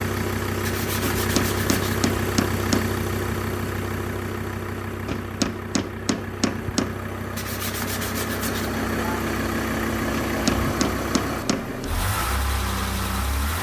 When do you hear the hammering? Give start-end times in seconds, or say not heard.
1.0-3.0, 5.0-7.0, 10.1-11.7.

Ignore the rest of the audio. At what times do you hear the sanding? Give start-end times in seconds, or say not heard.
0.6-2.0, 7.3-8.8.